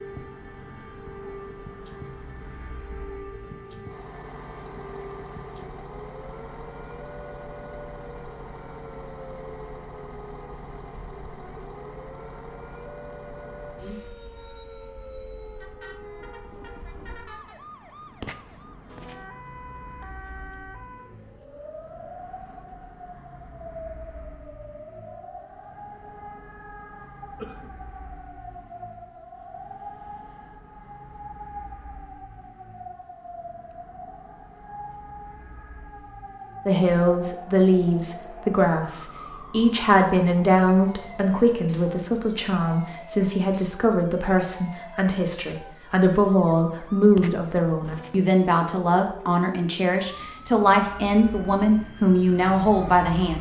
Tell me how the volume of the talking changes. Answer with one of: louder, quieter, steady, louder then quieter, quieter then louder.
steady.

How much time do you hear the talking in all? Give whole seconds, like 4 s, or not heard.
17 s.